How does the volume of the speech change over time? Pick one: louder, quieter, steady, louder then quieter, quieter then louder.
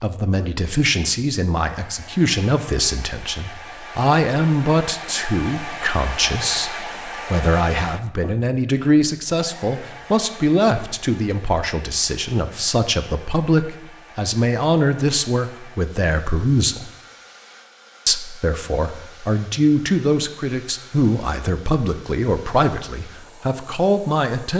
steady.